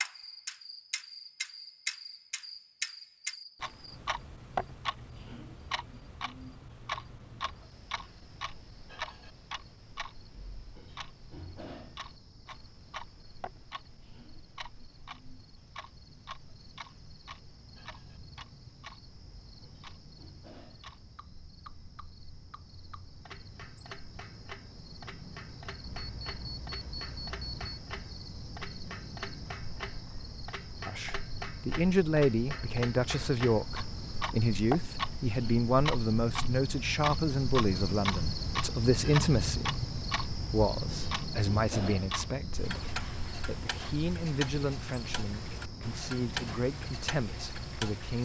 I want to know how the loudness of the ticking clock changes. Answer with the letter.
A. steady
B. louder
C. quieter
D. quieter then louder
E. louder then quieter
D.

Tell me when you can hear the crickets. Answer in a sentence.
The crickets can be heard from 0.1 to 48.2 s.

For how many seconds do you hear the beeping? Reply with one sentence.
You can hear the beeping for 2 seconds altogether.